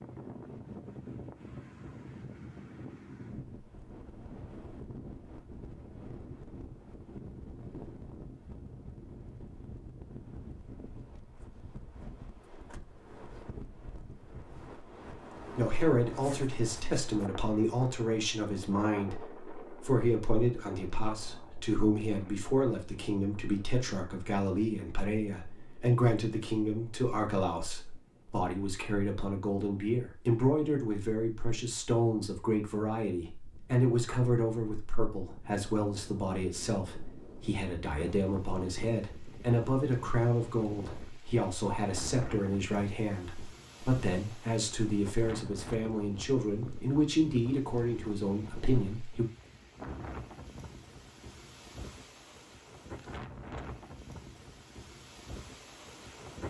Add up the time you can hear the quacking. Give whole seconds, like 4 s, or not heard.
not heard.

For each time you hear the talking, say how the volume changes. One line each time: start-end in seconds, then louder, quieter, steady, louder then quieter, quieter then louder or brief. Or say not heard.
15.6-49.2 steady.